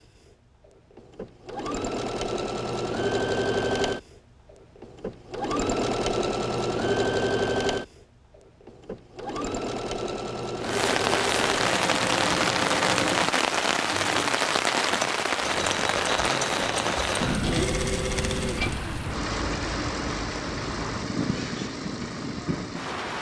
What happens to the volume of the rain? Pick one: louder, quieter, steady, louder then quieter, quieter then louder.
quieter.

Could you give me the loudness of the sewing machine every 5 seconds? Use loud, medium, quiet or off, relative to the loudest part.
loud, loud, loud, loud, medium.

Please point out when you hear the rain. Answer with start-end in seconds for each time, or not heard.
10.6-23.1.